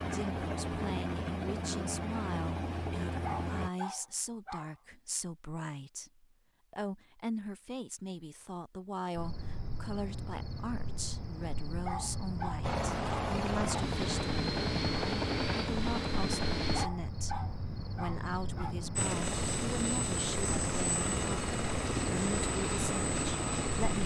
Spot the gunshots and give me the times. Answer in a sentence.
The gunshots can't be heard in this clip.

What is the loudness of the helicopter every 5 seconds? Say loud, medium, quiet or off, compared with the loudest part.
loud, off, loud, loud, loud.